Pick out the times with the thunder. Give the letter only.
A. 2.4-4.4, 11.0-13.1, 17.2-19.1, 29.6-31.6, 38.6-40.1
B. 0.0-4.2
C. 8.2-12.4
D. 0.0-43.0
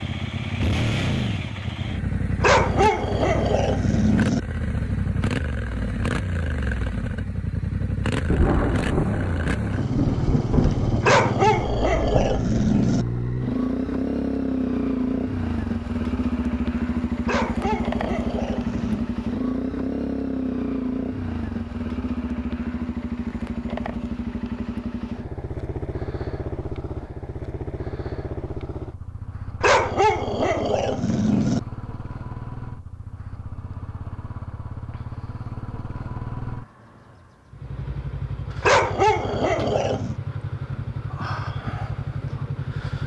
C.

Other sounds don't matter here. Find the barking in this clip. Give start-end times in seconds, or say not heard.
2.4-4.4, 11.0-13.1, 17.2-19.1, 29.6-31.6, 38.6-40.1.